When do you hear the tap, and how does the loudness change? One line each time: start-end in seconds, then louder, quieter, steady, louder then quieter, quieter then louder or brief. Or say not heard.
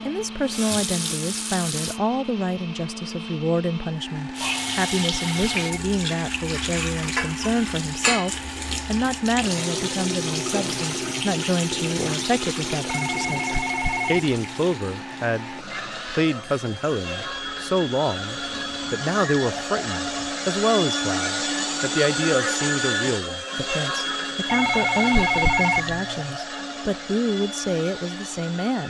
0.1-2.0 brief
4.3-20.4 quieter.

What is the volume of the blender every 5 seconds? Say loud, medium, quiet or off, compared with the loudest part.
medium, medium, medium, medium, loud, medium.